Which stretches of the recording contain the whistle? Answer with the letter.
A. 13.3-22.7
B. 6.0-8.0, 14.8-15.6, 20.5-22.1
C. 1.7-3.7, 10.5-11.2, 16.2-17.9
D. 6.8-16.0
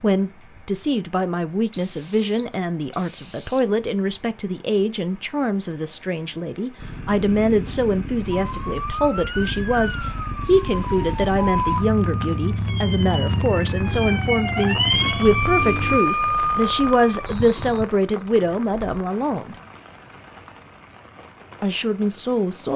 C.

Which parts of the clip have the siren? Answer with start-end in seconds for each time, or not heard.
8.4-17.9.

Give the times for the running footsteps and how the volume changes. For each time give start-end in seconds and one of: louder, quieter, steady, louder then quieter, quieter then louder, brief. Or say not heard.
not heard.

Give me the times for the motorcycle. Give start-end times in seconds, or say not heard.
6.8-16.0.